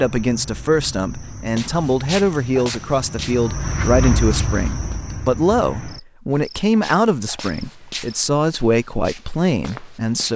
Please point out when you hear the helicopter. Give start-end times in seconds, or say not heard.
not heard.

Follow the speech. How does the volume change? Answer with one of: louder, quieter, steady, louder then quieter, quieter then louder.
steady.